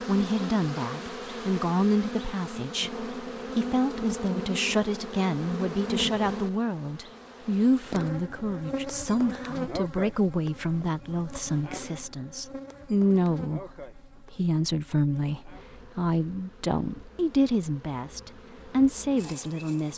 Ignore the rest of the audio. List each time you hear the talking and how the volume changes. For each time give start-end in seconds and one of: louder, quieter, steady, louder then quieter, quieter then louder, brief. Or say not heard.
0.0-19.9 steady.